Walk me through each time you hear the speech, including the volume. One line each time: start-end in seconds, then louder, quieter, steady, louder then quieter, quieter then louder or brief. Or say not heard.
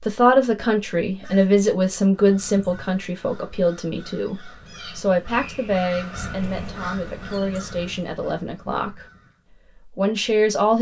0.0-9.1 quieter
9.9-10.7 brief.